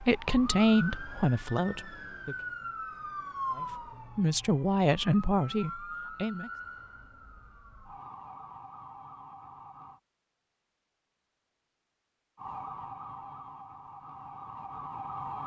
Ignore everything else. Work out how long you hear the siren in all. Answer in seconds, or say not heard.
13 s.